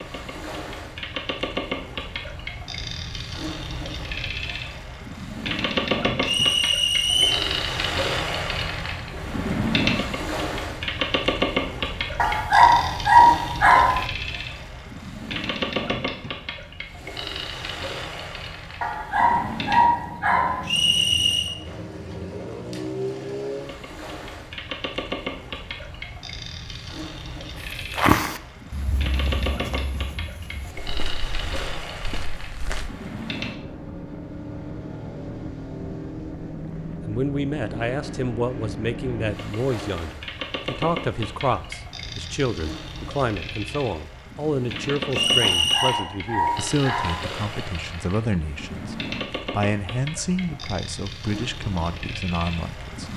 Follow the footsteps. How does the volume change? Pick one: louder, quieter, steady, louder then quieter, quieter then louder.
quieter.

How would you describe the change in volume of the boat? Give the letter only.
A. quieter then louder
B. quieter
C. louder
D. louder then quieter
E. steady
B.